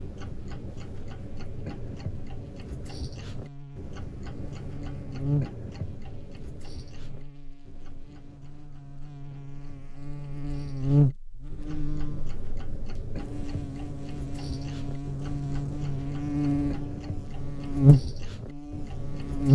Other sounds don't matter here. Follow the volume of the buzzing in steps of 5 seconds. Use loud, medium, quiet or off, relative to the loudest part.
quiet, quiet, medium, loud.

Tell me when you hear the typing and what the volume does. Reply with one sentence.
You can't hear the typing here.